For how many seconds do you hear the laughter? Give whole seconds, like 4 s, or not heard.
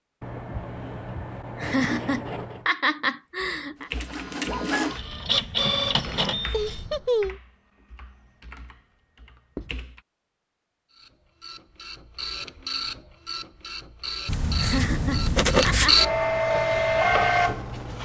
5 s.